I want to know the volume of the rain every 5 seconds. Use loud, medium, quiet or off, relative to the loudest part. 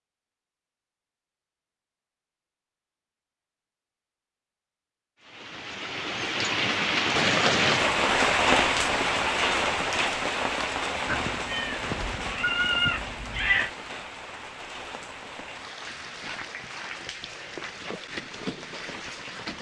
off, loud, medium, quiet.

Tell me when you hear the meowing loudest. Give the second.
13 s.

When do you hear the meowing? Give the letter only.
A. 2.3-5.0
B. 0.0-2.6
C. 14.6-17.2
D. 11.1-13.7
D.